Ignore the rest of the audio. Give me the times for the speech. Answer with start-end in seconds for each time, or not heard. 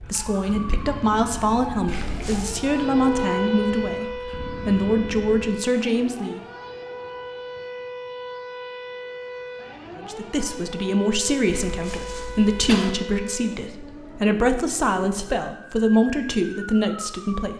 0.1-6.4, 9.9-17.5.